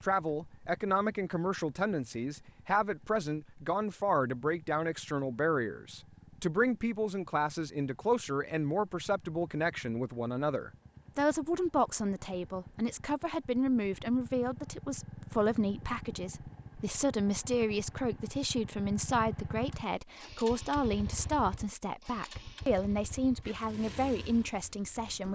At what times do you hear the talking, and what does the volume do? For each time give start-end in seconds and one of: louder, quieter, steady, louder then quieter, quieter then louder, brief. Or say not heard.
0.0-25.3 steady.